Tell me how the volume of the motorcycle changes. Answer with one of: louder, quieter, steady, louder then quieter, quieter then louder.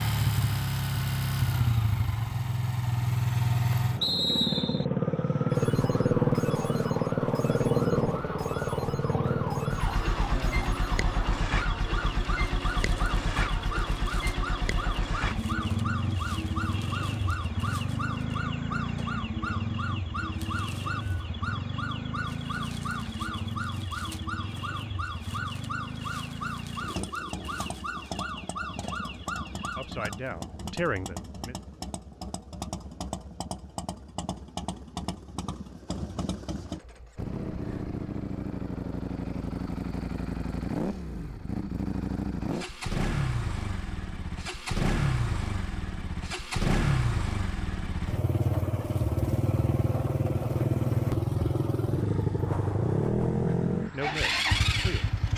quieter then louder.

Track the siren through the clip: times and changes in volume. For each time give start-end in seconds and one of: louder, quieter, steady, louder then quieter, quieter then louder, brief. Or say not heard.
4.9-30.2 steady.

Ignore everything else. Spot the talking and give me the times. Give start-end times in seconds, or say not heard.
29.8-31.6, 53.8-55.1.